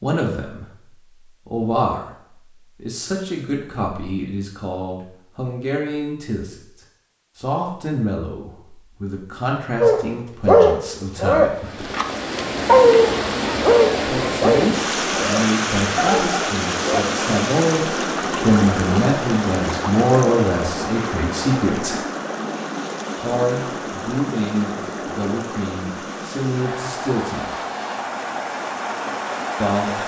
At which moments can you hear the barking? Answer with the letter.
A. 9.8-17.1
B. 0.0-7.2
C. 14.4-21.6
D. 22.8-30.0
A.